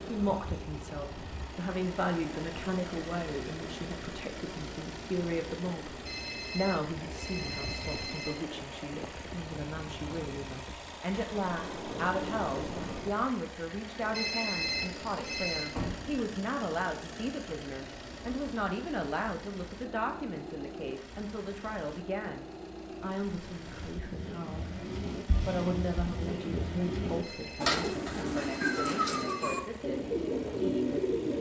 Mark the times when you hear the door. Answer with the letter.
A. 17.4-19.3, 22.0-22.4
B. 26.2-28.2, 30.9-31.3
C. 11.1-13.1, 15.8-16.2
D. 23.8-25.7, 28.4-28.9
C.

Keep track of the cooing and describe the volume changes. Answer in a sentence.
The volume of the cooing goes up.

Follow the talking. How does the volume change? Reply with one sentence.
The volume of the talking stays about the same.